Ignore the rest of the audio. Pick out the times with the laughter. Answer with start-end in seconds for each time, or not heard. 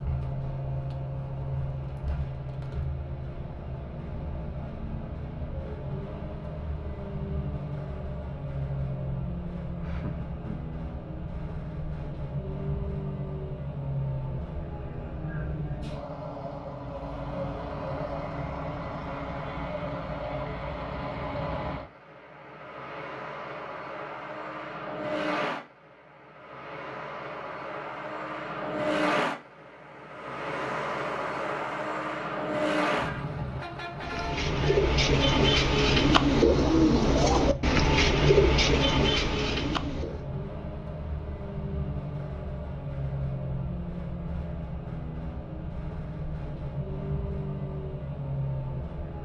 9.8-10.7.